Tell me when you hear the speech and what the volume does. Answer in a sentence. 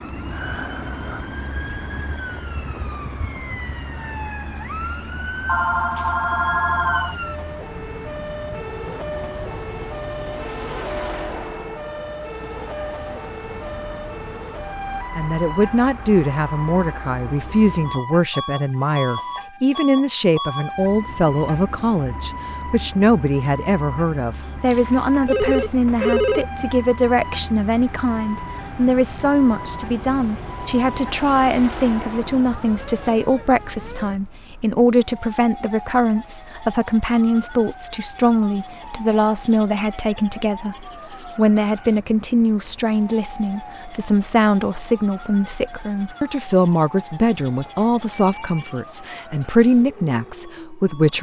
The speech can be heard from 15.2 to 51.1 s, at a steady volume.